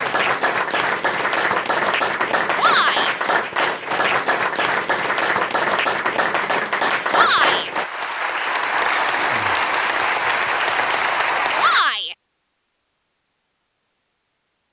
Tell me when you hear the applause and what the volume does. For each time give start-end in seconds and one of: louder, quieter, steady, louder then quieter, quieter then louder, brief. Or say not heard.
0.0-11.8 steady.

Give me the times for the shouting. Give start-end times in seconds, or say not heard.
2.5-3.1, 7.1-7.7, 11.6-12.2.